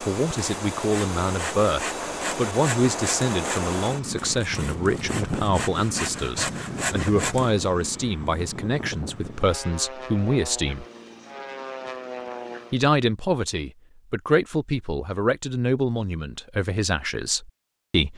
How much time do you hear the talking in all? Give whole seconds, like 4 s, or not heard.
16 s.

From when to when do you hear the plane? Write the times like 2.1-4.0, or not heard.
0.0-12.8.